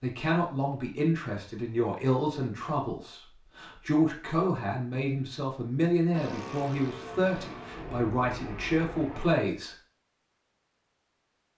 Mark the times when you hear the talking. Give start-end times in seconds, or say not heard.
0.0-9.8.